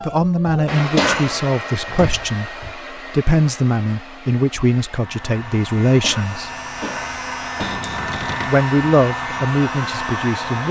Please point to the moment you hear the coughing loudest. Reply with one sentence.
The volume of the coughing peaks at 1 second.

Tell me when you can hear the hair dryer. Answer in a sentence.
The hair dryer can be heard from 0.0 to 10.6 s.